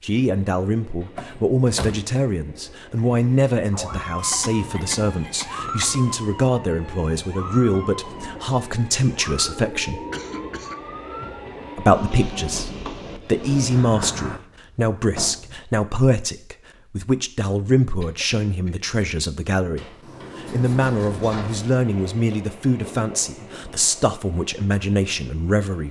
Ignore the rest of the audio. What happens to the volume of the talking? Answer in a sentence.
The loudness of the talking stays about the same.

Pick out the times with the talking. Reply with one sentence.
The talking can be heard from 0.0 to 10.0 s and from 11.8 to 25.8 s.